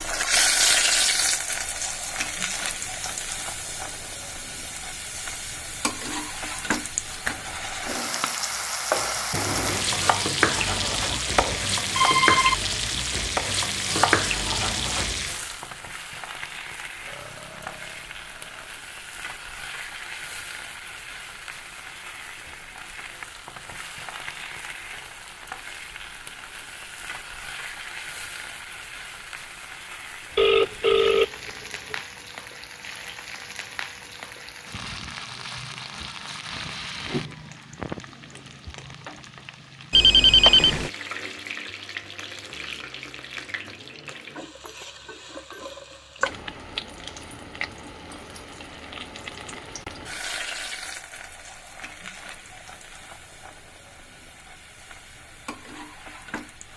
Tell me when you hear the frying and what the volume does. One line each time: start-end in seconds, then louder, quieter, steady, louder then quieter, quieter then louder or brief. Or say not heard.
0.0-56.7 quieter.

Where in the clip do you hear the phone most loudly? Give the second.
40 s.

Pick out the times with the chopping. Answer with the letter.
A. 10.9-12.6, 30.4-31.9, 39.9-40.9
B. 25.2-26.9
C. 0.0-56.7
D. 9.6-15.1
D.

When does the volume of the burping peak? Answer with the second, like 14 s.
17 s.